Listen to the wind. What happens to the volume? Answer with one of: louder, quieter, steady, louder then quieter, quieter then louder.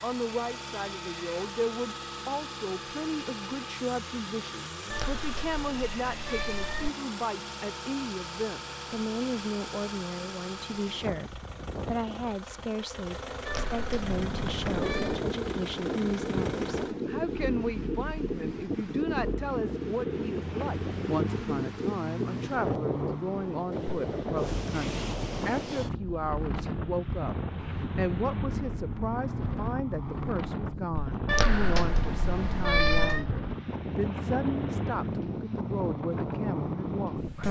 steady.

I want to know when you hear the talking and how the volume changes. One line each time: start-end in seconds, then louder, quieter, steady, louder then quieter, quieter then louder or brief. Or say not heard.
0.0-27.4 steady
27.9-37.4 steady.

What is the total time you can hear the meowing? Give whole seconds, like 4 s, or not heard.
6 s.